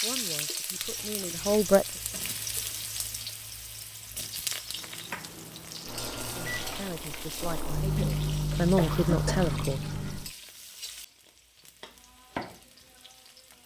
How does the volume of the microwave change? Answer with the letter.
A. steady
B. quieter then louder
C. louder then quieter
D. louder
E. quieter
D.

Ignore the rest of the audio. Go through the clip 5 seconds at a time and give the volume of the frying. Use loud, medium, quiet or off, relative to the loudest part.
loud, medium, medium.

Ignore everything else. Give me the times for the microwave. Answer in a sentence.
You can hear the microwave from 4.7 to 10.3 s.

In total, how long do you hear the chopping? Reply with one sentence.
The chopping can't be heard in this clip.